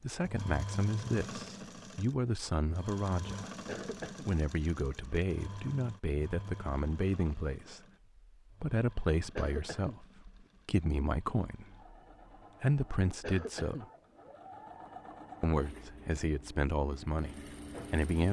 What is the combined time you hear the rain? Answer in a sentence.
You can't hear the rain here.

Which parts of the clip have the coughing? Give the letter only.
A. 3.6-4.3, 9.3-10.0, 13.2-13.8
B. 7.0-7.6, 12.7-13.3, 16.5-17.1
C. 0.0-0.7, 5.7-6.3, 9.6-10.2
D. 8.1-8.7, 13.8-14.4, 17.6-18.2
A.